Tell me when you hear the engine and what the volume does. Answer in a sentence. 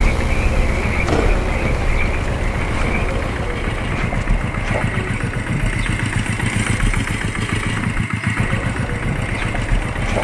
You can hear the engine from 0.2 to 10.2 s, getting louder.